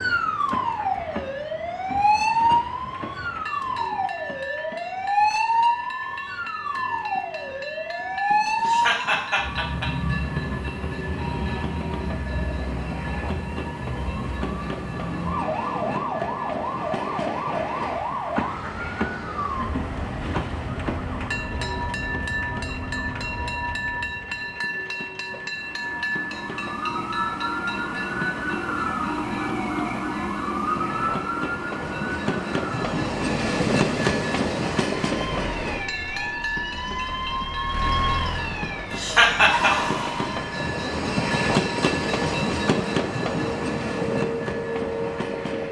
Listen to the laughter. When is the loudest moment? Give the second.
39 s.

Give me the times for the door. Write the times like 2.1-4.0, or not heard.
not heard.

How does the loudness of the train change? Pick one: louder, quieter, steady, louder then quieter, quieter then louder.
louder.